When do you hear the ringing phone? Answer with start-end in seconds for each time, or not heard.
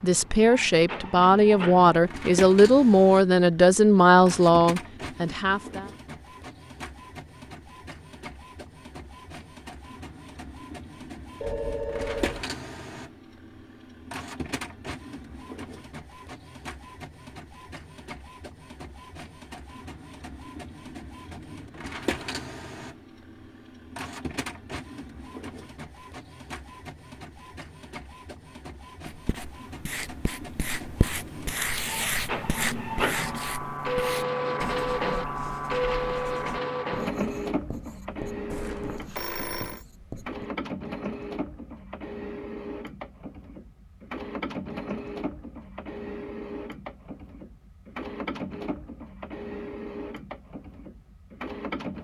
11.4-12.5, 38.5-39.9.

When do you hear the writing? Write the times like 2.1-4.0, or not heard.
29.1-40.5.